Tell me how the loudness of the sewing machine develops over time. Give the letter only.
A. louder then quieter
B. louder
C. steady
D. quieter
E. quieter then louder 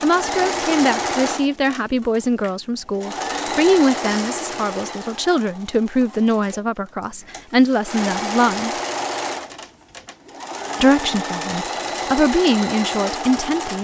E.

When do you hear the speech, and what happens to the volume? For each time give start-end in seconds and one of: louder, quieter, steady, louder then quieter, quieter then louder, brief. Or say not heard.
0.0-8.7 steady
10.8-13.7 brief.